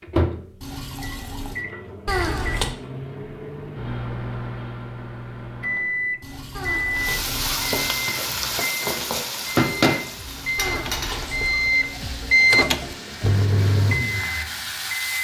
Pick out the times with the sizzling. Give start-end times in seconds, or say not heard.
6.9-15.1.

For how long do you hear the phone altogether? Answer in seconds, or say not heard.
3 s.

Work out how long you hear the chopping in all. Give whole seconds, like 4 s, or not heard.
not heard.